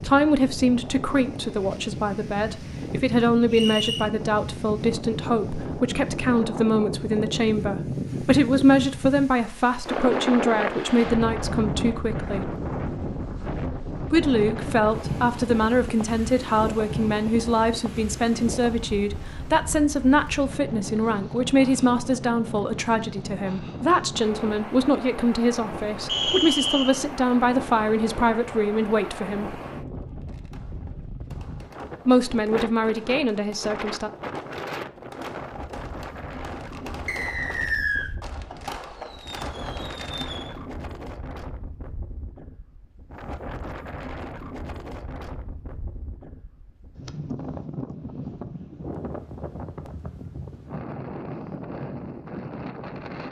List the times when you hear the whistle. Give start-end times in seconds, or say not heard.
3.5-4.0, 26.1-26.9, 37.0-38.1.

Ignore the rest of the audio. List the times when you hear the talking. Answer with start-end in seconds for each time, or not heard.
0.0-12.6, 14.1-29.6, 32.0-34.1.